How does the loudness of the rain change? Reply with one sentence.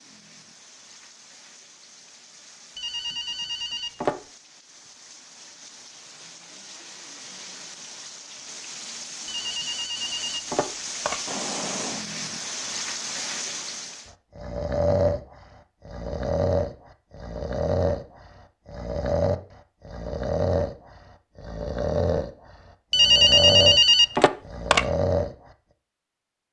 The volume of the rain goes up.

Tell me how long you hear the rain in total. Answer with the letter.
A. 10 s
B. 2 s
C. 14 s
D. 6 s
C.